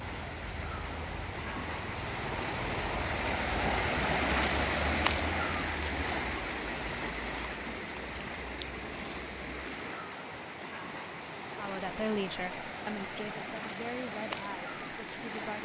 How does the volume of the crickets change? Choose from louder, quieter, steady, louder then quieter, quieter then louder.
quieter.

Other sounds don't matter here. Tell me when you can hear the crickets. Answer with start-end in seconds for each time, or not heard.
0.0-9.6.